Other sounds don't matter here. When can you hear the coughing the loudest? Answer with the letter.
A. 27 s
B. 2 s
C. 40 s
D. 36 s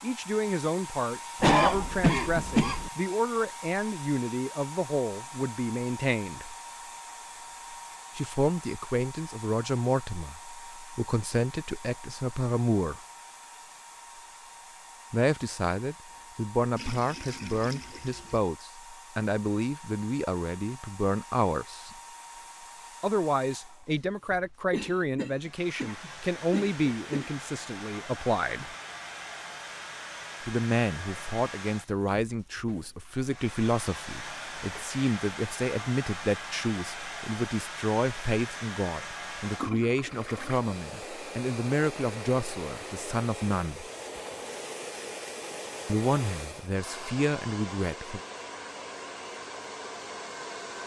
B.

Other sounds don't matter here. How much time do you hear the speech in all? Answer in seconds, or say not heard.
40 s.